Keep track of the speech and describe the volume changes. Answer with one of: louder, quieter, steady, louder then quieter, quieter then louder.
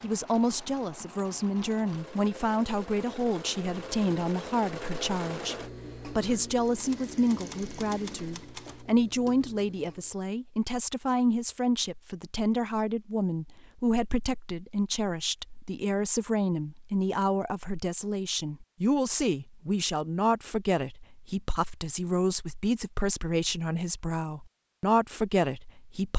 steady.